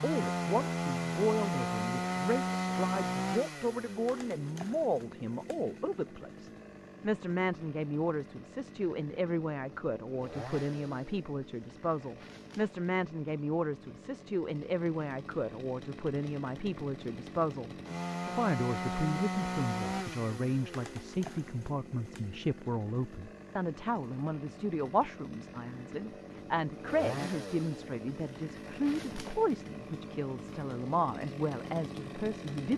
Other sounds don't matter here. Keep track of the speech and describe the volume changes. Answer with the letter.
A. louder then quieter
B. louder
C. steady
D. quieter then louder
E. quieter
C.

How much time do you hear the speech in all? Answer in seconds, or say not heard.
33 s.